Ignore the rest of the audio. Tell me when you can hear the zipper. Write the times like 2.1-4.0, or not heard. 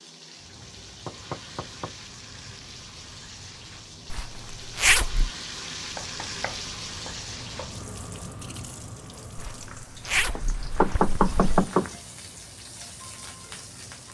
4.1-5.3, 9.3-11.7.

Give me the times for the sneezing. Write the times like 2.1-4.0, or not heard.
not heard.